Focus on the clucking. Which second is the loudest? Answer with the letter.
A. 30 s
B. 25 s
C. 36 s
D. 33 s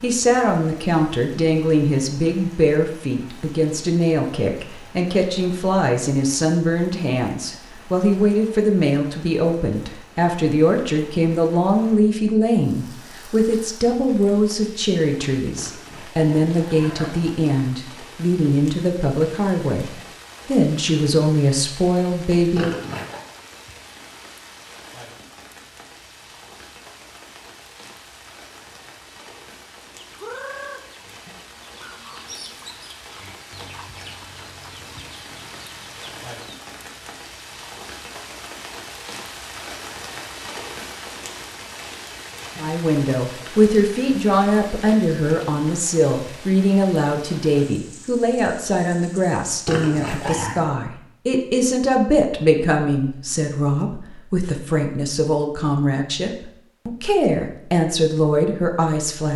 A.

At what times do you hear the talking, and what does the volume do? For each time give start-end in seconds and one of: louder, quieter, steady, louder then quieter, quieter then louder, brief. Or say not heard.
0.0-22.8 steady
42.5-59.3 steady.